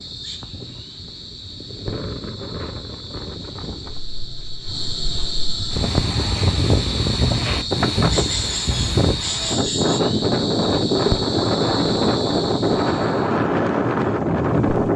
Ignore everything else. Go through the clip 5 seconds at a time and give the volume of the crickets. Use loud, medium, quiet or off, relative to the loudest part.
medium, loud, loud.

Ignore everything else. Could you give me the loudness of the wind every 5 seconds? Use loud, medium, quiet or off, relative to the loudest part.
quiet, loud, loud.